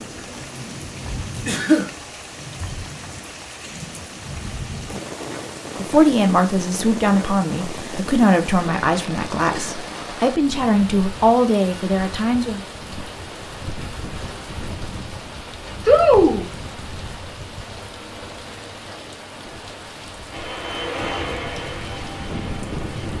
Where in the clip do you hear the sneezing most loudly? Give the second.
16 s.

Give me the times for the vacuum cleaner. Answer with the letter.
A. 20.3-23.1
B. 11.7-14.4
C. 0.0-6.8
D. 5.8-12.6
A.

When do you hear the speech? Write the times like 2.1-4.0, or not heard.
5.8-12.6.